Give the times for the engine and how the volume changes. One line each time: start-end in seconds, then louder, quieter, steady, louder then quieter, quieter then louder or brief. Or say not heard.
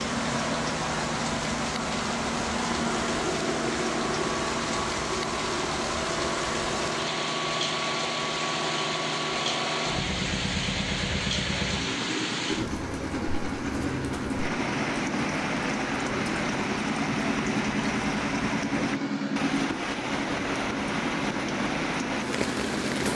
0.0-23.1 steady.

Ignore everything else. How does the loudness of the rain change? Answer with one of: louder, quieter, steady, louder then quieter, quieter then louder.
steady.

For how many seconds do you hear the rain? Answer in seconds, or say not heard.
23 s.